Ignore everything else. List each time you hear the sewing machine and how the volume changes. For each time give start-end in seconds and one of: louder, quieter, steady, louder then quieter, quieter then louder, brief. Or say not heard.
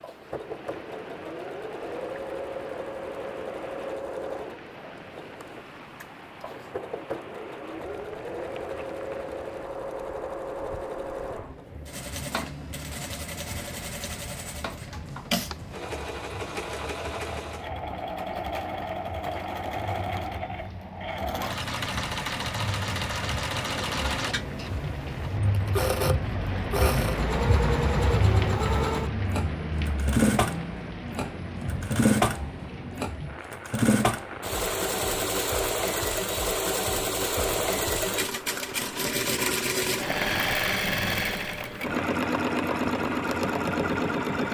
0.0-44.5 louder.